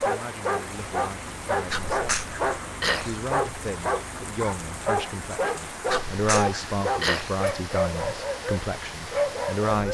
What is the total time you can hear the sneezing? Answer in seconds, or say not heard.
3 s.